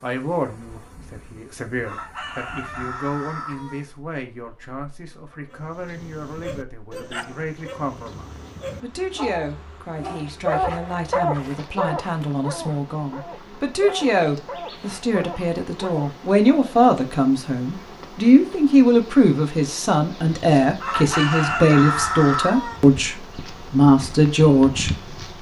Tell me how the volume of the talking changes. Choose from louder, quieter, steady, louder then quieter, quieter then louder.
louder.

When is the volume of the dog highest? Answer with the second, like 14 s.
11 s.